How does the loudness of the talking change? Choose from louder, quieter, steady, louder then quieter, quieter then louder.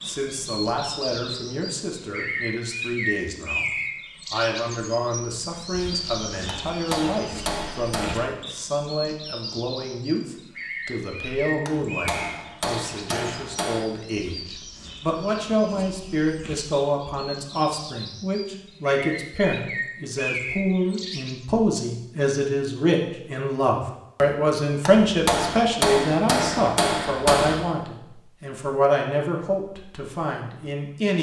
louder.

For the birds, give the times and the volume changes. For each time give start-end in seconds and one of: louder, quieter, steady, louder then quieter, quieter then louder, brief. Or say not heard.
0.0-21.4 quieter then louder.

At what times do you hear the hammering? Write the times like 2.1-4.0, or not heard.
6.5-8.2, 11.7-13.8, 24.9-27.6.